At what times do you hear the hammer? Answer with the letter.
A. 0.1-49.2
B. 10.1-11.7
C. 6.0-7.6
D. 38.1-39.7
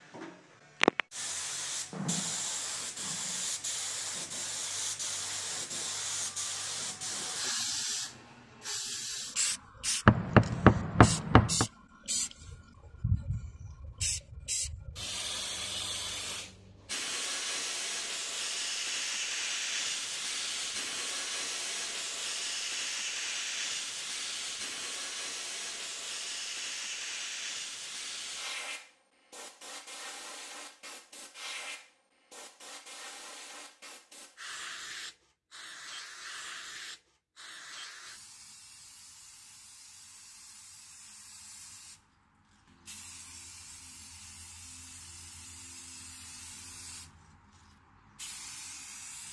B.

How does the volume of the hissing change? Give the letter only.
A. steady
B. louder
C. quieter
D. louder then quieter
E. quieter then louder
C.